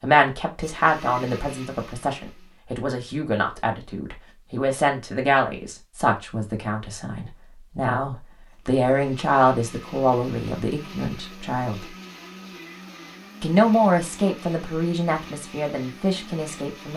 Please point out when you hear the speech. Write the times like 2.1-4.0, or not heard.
0.0-11.8, 13.4-16.9.